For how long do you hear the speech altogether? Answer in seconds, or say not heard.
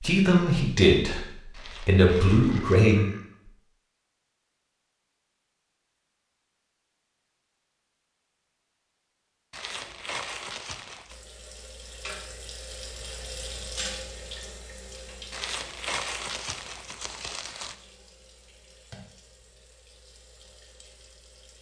3 s.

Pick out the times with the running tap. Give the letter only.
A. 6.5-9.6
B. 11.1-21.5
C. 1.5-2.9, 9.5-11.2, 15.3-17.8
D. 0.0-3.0
B.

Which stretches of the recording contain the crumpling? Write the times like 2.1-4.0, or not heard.
1.5-2.9, 9.5-11.2, 15.3-17.8.